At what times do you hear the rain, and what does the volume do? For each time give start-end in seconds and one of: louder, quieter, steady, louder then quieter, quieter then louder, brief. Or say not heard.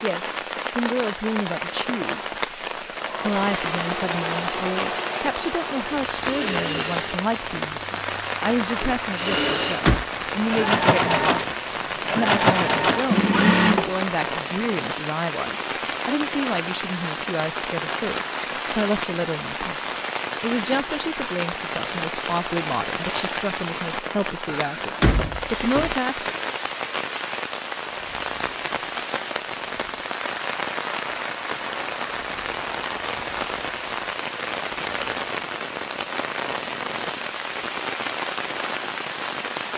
0.0-39.7 steady.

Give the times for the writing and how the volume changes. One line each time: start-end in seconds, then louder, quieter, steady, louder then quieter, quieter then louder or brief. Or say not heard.
not heard.